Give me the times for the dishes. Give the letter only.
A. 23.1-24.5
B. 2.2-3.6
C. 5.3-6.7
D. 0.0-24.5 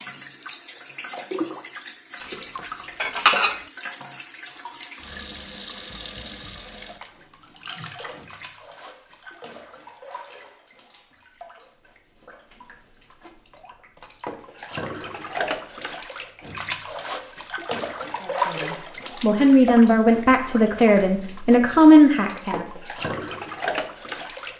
B.